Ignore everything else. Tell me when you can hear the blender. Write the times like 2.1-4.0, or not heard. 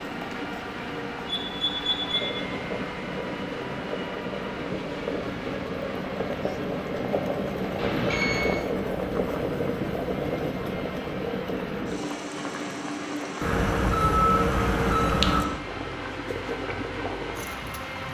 0.0-18.1.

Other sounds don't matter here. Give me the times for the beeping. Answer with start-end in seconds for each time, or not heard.
1.2-2.3, 7.8-8.6, 13.4-15.4.